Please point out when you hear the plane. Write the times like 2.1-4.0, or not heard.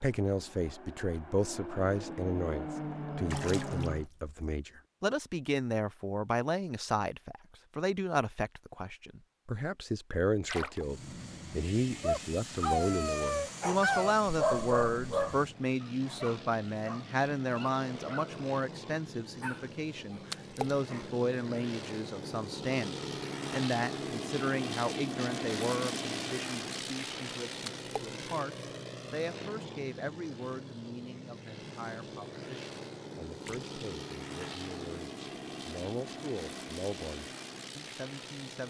0.0-4.1, 10.8-38.6.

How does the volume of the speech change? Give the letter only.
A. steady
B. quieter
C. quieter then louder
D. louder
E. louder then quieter
B.